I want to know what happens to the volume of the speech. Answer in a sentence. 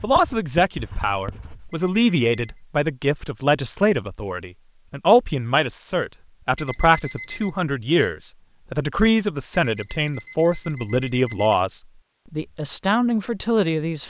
The volume of the speech stays about the same.